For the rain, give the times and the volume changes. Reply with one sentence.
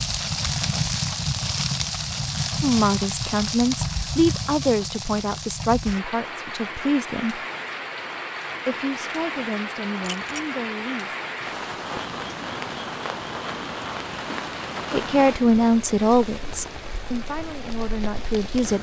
The rain can be heard from 0.0 to 18.7 s, getting quieter.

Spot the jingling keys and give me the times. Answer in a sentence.
You can hear the jingling keys from 10.0 to 10.5 s.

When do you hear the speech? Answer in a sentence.
The speech can be heard from 2.6 to 7.5 s, from 8.7 to 11.2 s and from 14.9 to 18.7 s.